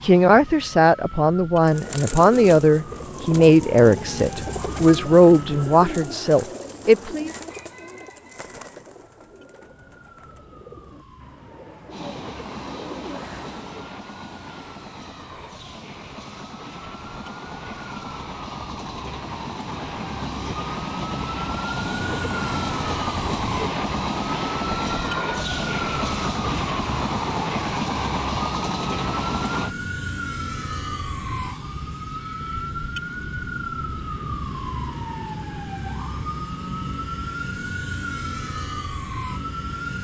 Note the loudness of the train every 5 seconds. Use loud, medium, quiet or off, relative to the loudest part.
off, off, medium, medium, loud, loud, off, off.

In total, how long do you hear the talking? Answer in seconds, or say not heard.
7 s.